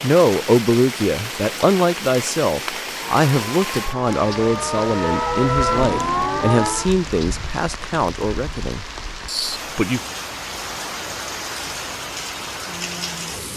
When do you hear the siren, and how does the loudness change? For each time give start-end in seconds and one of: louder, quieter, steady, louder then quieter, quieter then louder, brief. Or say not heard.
2.8-7.0 louder.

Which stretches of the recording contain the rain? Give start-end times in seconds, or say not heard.
0.0-13.5.